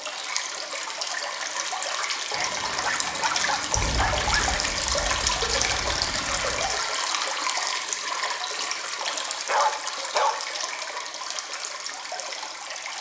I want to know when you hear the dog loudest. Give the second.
10 s.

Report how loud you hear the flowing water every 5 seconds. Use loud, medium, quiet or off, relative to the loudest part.
loud, loud, medium.